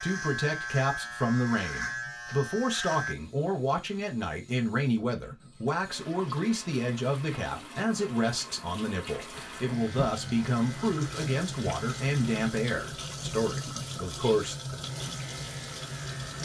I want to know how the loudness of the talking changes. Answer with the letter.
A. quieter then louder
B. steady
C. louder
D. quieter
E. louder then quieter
B.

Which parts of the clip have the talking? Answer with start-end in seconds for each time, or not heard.
0.0-14.8.